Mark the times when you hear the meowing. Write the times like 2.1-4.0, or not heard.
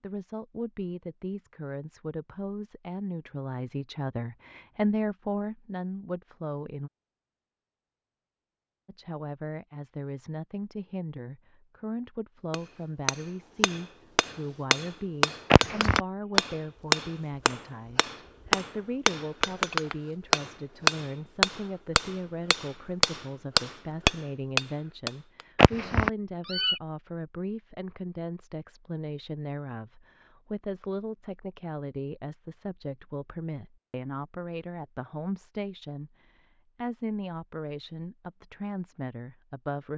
15.5-16.0, 25.6-26.8.